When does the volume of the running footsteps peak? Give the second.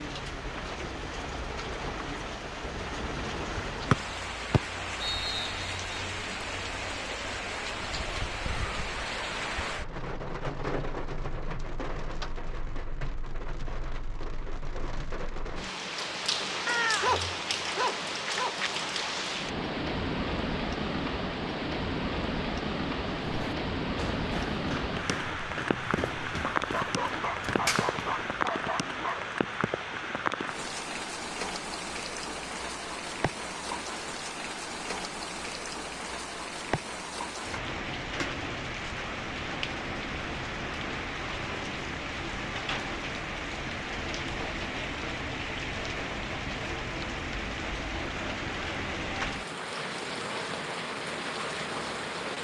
28 s.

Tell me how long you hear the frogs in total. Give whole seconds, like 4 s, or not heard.
not heard.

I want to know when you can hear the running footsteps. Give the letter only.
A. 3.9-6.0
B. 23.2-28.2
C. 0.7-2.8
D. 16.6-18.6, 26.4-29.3
B.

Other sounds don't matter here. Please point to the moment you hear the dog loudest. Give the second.
17 s.